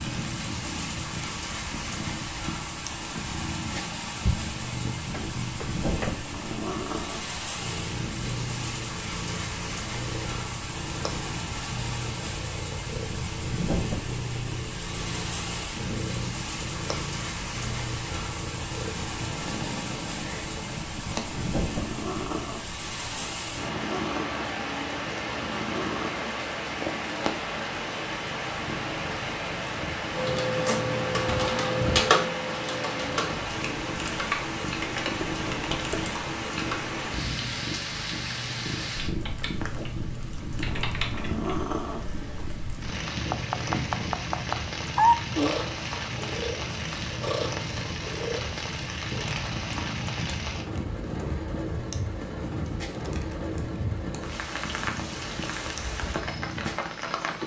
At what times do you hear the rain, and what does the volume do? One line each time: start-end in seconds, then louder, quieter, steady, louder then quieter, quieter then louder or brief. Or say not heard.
0.0-57.4 steady.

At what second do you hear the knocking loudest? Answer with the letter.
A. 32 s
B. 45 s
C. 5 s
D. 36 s
B.